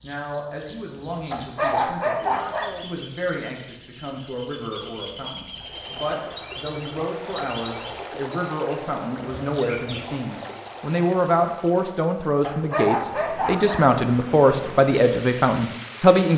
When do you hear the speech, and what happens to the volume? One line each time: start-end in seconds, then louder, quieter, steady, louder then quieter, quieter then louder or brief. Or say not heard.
0.0-16.3 louder.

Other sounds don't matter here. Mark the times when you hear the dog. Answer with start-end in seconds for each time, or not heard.
1.3-2.9, 12.4-13.9.